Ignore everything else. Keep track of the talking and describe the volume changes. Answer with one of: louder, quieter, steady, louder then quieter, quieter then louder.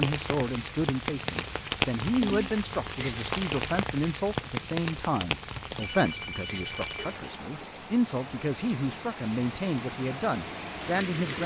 steady.